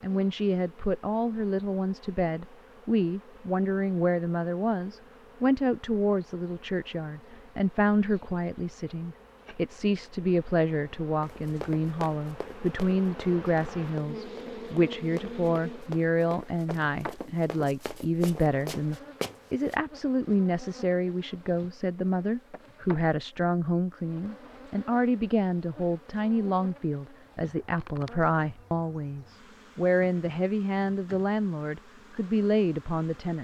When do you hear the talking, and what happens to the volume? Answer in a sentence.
The talking can be heard from 0.0 to 33.4 s, at a steady volume.